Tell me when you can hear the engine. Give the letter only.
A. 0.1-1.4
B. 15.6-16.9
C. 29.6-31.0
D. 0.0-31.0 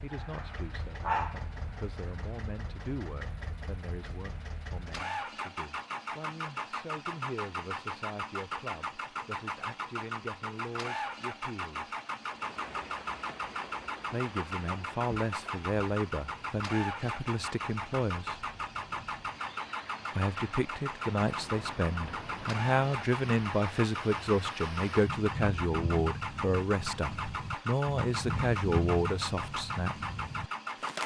D.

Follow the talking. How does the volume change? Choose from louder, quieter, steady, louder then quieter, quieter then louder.
louder.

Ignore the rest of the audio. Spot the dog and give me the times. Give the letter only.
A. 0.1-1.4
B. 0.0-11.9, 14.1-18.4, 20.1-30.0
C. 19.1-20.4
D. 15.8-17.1
A.